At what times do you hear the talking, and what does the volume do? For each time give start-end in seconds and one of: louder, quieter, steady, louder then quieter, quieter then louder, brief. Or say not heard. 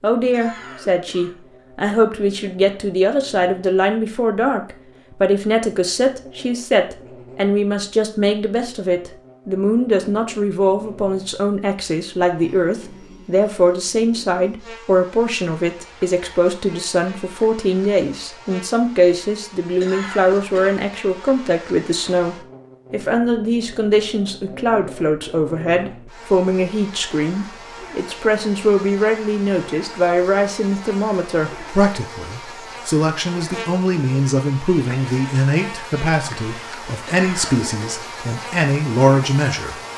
0.0-39.8 steady.